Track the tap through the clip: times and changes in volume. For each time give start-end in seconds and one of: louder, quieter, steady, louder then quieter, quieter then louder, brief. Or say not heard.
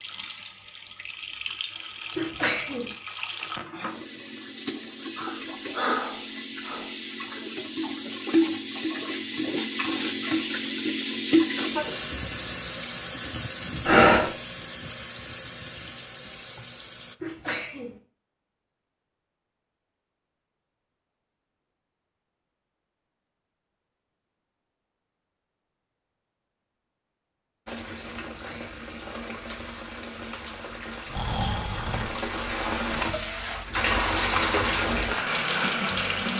0.0-17.1 louder then quieter
27.6-36.3 louder.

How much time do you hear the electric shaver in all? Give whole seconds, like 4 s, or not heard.
not heard.